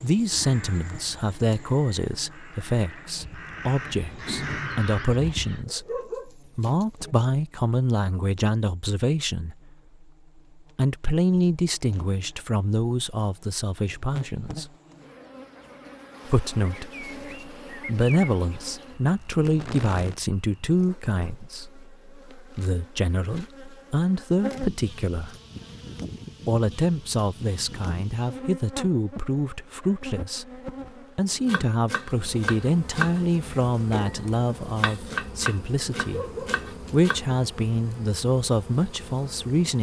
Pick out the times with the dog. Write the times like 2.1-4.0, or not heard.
5.7-7.1, 36.0-37.1.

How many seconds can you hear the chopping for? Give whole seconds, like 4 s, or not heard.
6 s.